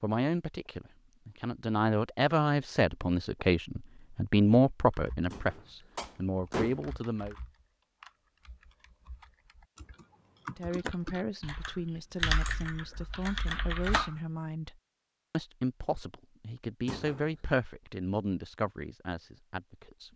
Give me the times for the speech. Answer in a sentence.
The speech can be heard from 0.0 to 7.3 s and from 10.5 to 20.1 s.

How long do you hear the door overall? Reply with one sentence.
The door can be heard for 2 seconds in total.